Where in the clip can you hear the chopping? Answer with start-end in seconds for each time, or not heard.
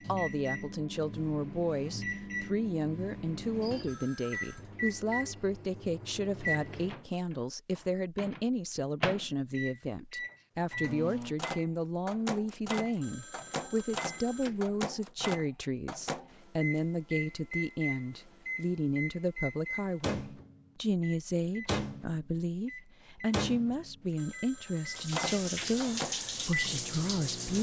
not heard.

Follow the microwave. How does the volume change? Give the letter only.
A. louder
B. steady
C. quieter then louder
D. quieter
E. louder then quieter
B.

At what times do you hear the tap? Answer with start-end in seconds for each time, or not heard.
24.9-27.5.